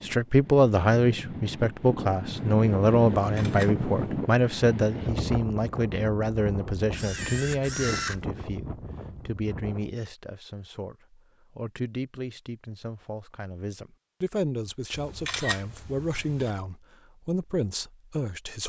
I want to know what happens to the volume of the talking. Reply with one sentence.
The volume of the talking goes down.